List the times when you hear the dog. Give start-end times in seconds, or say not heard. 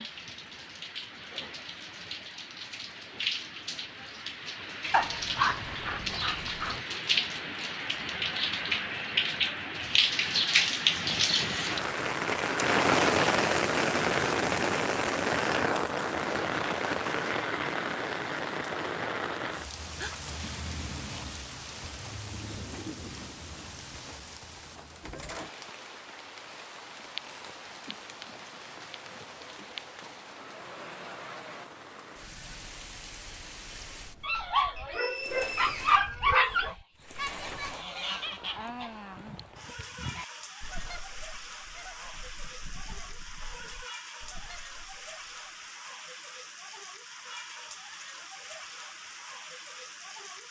4.9-6.8, 34.2-36.8.